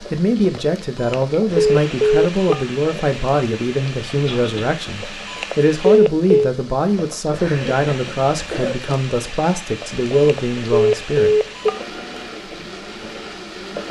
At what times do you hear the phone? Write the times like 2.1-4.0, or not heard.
1.0-2.6, 5.2-6.5, 10.2-11.8.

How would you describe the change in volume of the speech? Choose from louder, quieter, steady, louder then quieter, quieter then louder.
steady.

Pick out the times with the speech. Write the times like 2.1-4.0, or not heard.
0.0-11.3.